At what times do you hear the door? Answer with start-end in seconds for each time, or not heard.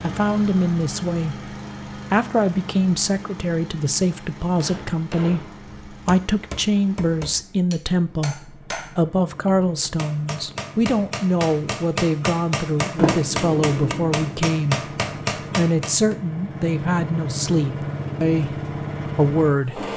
12.9-14.3.